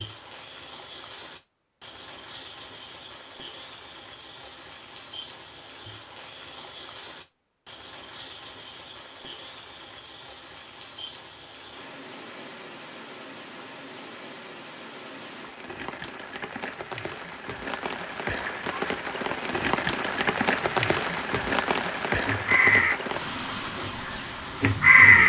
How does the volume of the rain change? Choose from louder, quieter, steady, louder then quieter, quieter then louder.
louder.